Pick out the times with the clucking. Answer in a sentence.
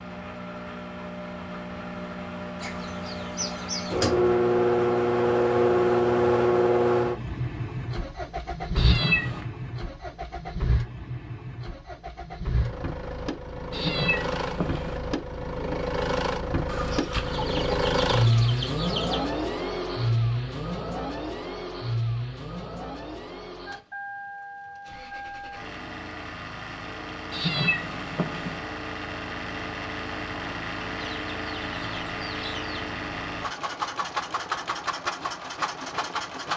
You can hear the clucking from 2.5 to 4.0 s, from 16.6 to 19.2 s and from 30.9 to 32.8 s.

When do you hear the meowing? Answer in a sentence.
The meowing can be heard from 8.8 to 9.4 s, from 13.7 to 15.0 s and from 27.3 to 28.6 s.